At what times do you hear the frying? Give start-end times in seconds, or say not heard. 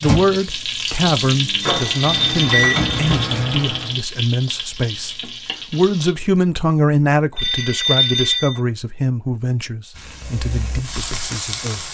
0.0-6.2, 9.9-11.9.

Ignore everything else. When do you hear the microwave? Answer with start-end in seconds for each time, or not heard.
0.0-4.0.